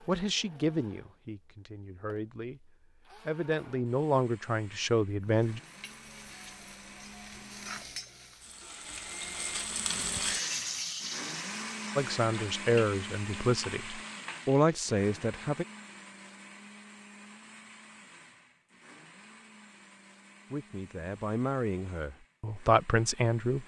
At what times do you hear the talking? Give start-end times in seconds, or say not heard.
0.1-5.6, 11.9-15.7, 20.5-23.6.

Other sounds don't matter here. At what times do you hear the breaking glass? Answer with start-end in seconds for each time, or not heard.
not heard.